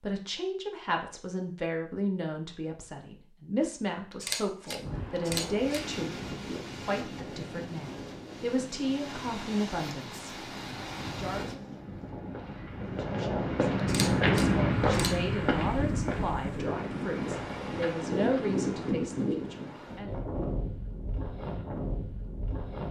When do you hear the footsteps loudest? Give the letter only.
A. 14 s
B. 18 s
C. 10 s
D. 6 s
A.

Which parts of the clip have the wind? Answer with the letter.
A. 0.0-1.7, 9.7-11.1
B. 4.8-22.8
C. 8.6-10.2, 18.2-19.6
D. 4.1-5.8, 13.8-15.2
B.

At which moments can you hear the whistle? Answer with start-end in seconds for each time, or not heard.
not heard.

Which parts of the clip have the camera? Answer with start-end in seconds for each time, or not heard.
4.1-5.8, 13.8-15.2.